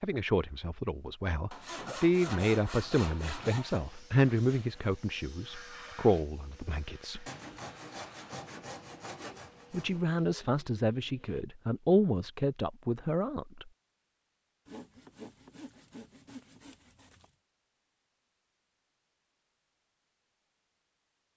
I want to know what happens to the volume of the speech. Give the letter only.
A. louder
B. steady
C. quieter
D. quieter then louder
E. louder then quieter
B.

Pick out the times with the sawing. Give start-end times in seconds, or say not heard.
1.5-3.7, 7.2-10.1, 14.7-17.4.